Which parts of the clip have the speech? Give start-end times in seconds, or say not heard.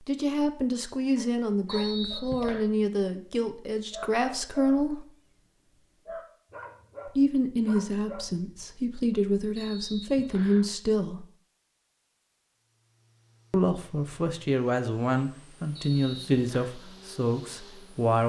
0.0-5.0, 7.0-11.2, 13.5-18.2.